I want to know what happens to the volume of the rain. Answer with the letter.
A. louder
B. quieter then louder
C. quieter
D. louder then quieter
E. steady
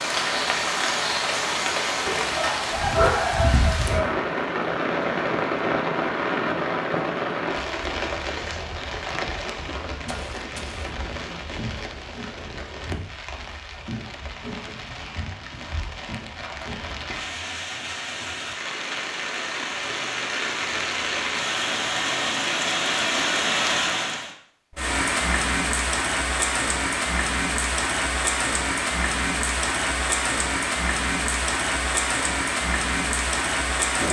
B.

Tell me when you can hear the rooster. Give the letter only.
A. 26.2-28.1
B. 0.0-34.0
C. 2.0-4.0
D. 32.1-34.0
C.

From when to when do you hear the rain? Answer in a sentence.
You can hear the rain from 0.0 to 34.0 s.